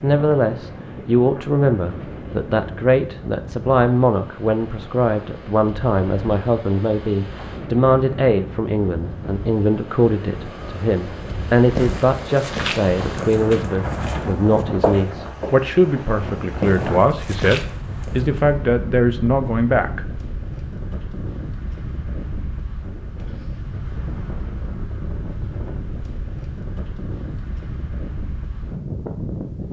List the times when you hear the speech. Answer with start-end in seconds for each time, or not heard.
0.0-20.1.